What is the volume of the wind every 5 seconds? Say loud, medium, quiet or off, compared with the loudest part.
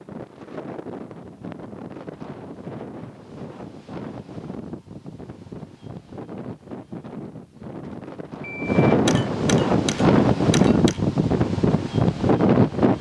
quiet, medium, loud.